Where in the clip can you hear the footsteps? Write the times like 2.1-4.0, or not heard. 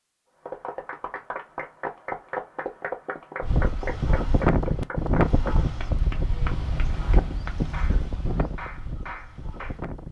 not heard.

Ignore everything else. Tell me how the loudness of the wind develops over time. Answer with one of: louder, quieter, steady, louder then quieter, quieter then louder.
quieter.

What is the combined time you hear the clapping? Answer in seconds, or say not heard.
9 s.